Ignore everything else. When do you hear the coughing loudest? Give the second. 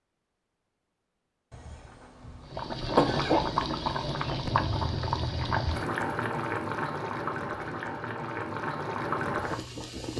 3 s.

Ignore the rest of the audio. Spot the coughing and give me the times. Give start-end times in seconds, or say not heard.
1.5-3.5.